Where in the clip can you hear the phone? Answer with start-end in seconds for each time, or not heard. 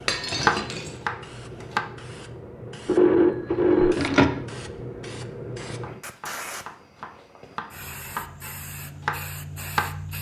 2.9-4.4.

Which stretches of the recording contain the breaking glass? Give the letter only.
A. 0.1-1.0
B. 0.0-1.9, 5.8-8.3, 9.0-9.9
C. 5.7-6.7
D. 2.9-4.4
A.